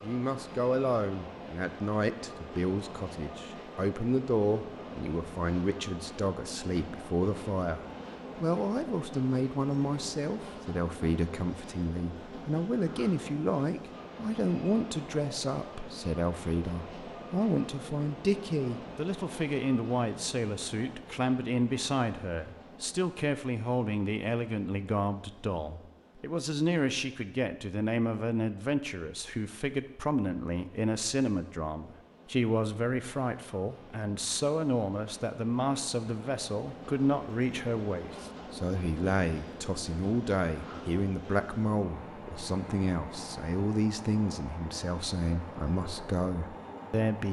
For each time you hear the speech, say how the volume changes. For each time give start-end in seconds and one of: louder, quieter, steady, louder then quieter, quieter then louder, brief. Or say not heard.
0.0-47.2 steady.